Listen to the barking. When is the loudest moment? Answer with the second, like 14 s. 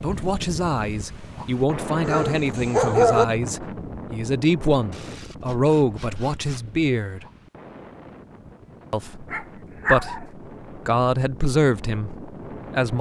3 s.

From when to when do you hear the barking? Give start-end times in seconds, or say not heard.
2.0-3.2, 9.3-10.2.